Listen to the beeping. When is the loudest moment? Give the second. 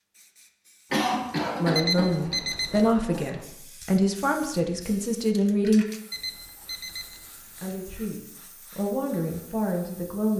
2 s.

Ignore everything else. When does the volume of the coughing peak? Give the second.
1 s.